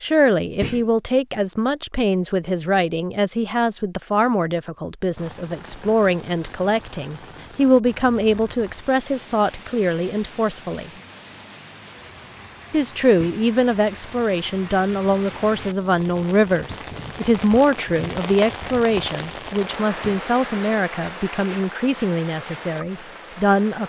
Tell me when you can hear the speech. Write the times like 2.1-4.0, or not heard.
0.0-10.9, 12.7-23.8.